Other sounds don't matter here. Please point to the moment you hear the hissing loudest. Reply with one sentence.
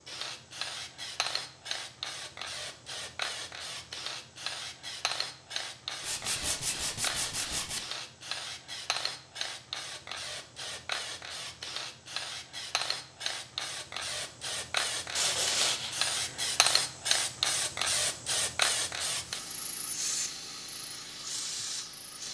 The loudest moment of the hissing is at 17 seconds.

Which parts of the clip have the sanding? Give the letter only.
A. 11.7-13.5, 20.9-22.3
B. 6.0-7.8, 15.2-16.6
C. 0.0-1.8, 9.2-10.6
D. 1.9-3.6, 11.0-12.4
B.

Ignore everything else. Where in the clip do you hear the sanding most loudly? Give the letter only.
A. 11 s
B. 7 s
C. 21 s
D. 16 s
D.